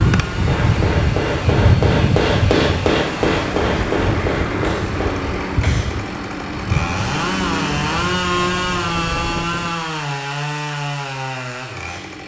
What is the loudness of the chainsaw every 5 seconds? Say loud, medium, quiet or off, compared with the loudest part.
medium, loud, loud.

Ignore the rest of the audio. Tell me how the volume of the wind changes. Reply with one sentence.
The volume of the wind goes down.